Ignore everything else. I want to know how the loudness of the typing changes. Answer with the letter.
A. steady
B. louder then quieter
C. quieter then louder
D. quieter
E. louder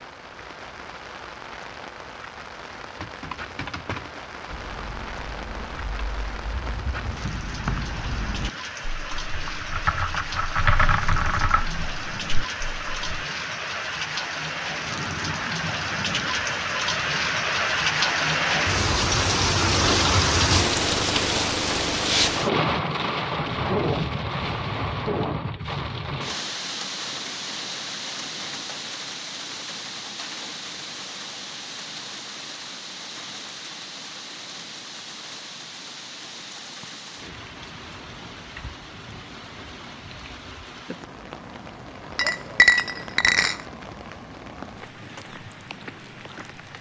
E.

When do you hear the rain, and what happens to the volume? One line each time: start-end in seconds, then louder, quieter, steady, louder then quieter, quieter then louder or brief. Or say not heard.
0.0-46.7 louder then quieter.